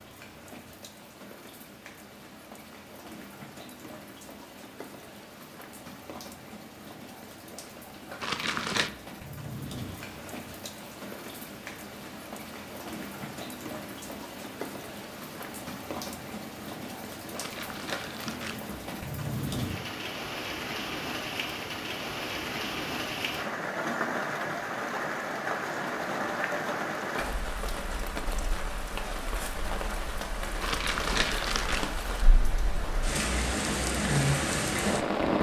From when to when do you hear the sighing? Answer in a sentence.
The sighing can't be heard in this clip.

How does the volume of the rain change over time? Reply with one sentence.
The volume of the rain goes up.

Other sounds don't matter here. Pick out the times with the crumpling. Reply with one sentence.
You can hear the crumpling from 8.2 to 8.9 s, from 17.3 to 18.6 s and from 30.6 to 31.9 s.